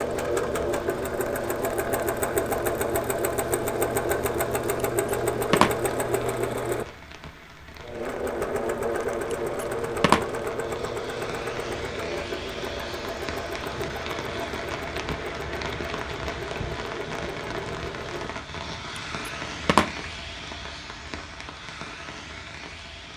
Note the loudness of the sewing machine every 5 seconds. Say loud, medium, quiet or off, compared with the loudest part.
loud, loud, medium, medium, off.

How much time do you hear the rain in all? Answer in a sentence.
You can hear the rain for 23 seconds altogether.